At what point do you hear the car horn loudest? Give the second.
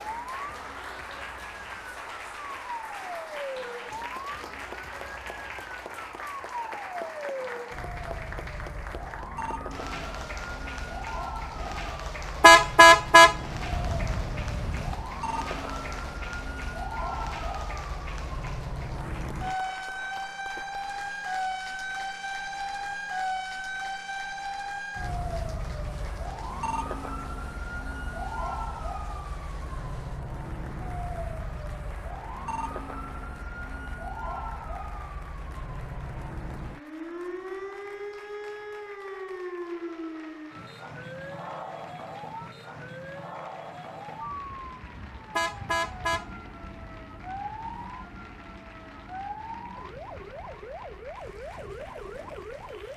13 s.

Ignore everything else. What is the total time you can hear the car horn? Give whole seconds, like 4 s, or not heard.
5 s.